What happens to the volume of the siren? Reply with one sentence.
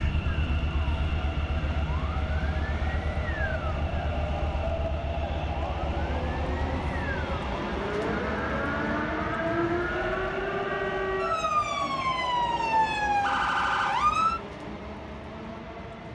The loudness of the siren goes up.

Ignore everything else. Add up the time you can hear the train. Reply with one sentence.
The train can be heard for 16 seconds in total.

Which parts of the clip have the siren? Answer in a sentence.
You can hear the siren from 0.0 to 14.4 s.